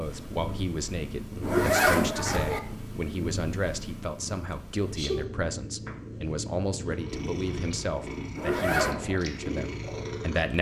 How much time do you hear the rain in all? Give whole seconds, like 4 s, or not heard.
not heard.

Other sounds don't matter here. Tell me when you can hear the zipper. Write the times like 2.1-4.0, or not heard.
1.4-2.6, 8.3-8.9.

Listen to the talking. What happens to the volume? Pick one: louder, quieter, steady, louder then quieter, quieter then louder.
steady.